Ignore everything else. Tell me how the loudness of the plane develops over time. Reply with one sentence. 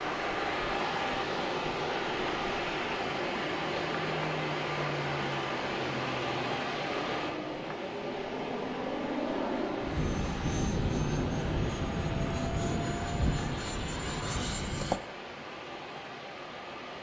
The loudness of the plane goes up.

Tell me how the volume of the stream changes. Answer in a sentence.
The loudness of the stream goes down.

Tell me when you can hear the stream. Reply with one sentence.
The stream can be heard from 0.0 to 16.9 s.